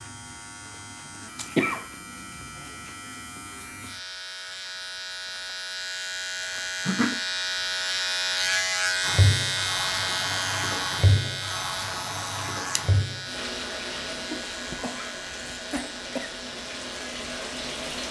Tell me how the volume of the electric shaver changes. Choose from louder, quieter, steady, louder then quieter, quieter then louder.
louder then quieter.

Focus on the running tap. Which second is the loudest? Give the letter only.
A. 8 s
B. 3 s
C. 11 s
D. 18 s
C.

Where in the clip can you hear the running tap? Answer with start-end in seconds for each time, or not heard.
9.0-18.0.